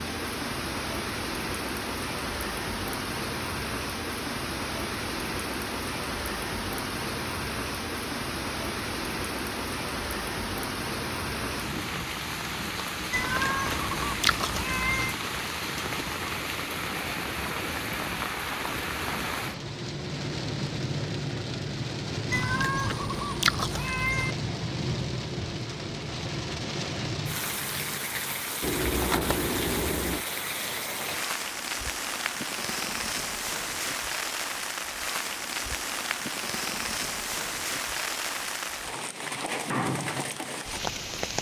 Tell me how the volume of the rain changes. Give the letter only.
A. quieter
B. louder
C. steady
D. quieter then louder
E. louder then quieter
C.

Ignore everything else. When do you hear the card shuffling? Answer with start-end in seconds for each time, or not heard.
28.6-30.2.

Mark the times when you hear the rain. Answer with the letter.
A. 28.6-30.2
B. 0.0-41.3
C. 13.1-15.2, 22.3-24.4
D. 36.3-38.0
B.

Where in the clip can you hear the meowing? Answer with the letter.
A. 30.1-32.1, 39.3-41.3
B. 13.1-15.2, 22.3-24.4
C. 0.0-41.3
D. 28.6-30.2
B.